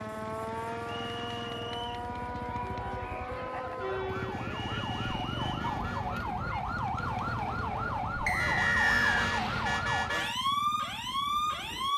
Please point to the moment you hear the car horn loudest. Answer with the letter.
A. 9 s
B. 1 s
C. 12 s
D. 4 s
A.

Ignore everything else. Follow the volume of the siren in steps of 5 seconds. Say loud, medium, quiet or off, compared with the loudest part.
medium, loud, loud.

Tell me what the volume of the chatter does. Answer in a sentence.
The loudness of the chatter goes up, then down.